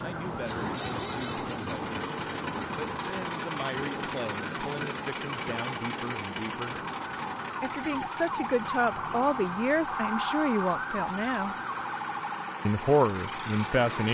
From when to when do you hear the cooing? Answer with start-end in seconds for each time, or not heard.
not heard.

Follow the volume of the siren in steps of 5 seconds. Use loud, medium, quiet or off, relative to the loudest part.
medium, loud, loud.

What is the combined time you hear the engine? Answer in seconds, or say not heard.
14 s.